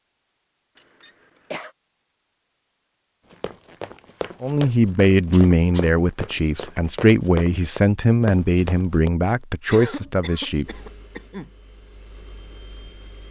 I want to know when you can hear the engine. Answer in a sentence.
The engine can be heard from 10.6 to 13.2 s.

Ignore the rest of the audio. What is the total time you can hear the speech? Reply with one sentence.
The speech can be heard for 6 seconds in total.